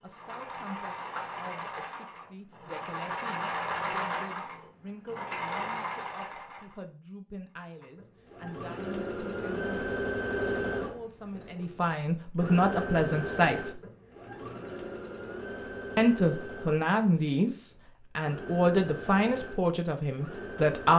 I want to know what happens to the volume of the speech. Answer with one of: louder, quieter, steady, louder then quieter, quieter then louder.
louder.